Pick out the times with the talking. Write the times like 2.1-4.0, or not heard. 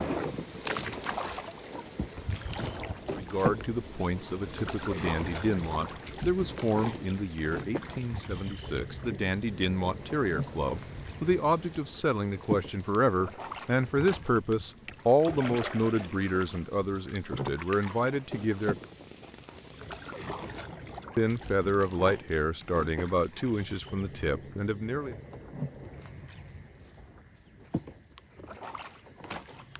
3.1-18.8, 21.1-25.1.